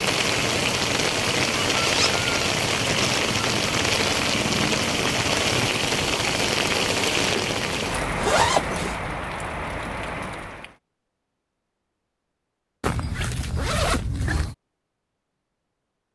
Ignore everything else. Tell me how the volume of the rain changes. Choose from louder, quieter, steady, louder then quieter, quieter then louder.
quieter.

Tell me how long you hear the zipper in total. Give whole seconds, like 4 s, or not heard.
4 s.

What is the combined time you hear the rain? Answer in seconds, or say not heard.
11 s.